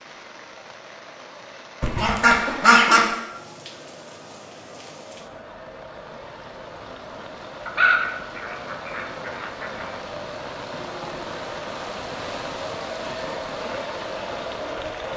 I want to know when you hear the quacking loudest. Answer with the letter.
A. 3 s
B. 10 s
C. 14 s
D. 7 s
A.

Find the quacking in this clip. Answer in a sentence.
You can hear the quacking from 1.8 to 3.1 s and from 7.7 to 9.9 s.